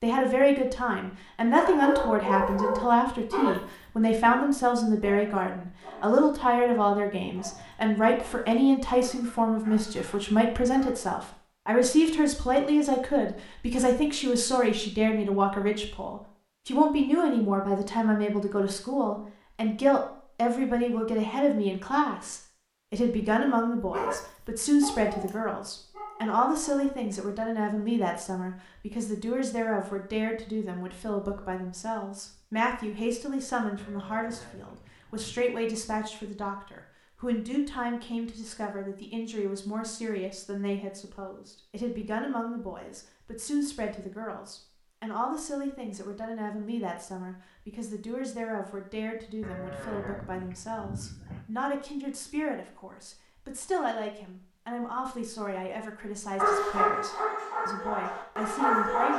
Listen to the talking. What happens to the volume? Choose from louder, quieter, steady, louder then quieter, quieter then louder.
quieter.